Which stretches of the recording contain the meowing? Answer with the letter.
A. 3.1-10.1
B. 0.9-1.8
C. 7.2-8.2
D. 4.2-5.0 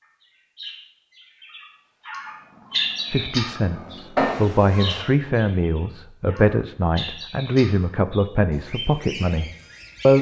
D.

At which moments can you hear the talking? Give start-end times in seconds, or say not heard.
3.1-10.1.